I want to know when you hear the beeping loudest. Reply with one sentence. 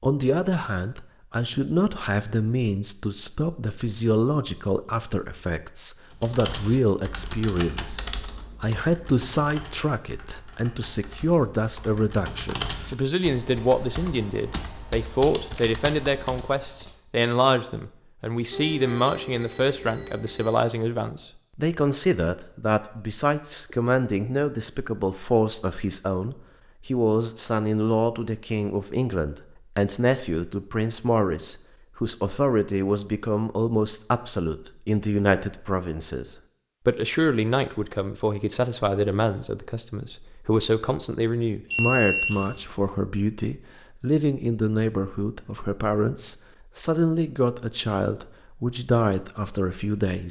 The volume of the beeping peaks at 42 seconds.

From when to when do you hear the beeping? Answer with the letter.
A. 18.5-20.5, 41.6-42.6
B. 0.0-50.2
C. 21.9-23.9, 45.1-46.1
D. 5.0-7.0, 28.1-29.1
A.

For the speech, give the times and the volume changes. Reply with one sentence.
You can hear the speech from 0.0 to 50.2 s, at a steady volume.